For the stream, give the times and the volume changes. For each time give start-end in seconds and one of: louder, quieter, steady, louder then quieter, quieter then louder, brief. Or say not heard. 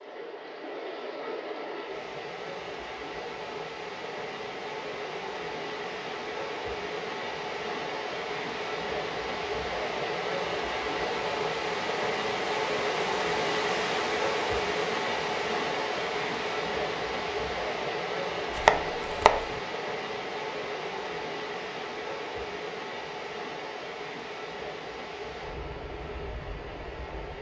0.0-27.3 louder then quieter.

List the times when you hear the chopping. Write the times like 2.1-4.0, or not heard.
18.6-19.6.